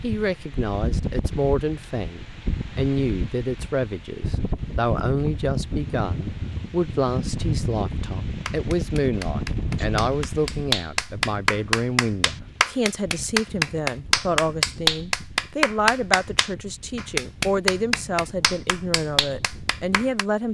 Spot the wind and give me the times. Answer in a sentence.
You can hear the wind from 0.0 to 20.4 s.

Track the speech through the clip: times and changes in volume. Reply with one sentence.
You can hear the speech from 0.0 to 20.4 s, at a steady volume.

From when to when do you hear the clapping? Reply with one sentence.
The clapping can be heard from 8.4 to 20.2 s.